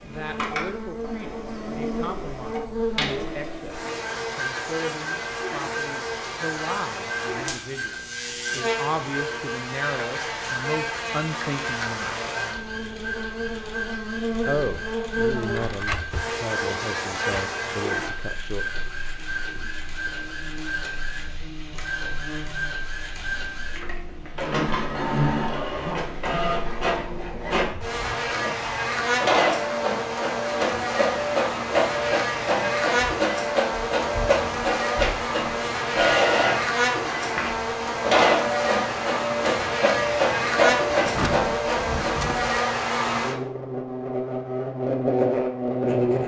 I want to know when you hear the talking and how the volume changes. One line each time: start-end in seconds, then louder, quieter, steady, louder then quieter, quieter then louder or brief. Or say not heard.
0.0-12.2 louder
14.4-18.6 steady.